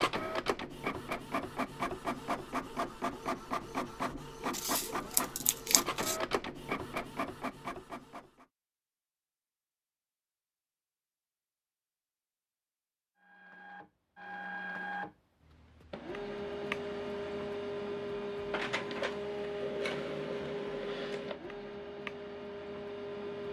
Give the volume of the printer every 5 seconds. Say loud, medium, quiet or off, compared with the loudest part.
loud, loud, medium, loud, loud.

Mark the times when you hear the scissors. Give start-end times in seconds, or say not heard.
4.5-6.2.